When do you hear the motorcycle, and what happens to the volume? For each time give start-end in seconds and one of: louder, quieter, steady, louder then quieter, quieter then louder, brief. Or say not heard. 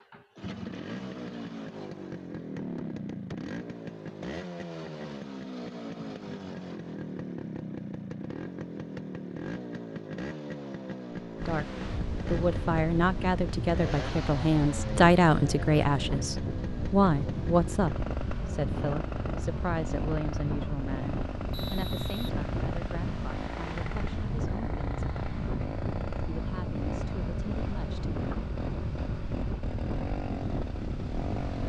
0.0-31.6 steady.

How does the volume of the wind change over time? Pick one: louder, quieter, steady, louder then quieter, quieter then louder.
steady.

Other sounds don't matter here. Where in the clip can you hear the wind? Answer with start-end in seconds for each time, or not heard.
11.3-31.6.